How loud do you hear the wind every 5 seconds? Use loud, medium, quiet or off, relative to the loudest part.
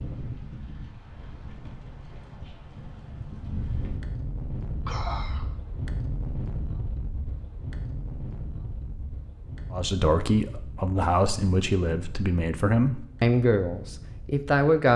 loud, loud, medium.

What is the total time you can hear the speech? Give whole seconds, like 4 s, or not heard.
5 s.